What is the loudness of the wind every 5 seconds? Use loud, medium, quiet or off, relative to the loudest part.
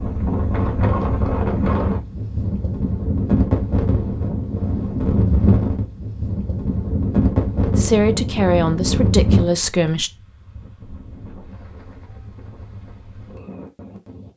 loud, loud, quiet.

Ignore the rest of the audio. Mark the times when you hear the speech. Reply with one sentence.
The speech can be heard from 7.8 to 10.1 s.